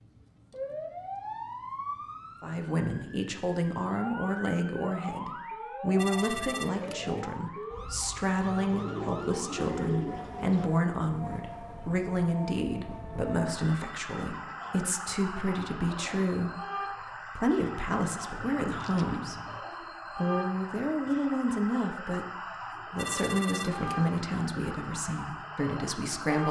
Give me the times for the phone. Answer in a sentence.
You can hear the phone from 6.0 to 7.2 s, from 13.6 to 14.8 s and from 22.9 to 24.2 s.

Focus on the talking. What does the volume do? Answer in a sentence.
The volume of the talking stays about the same.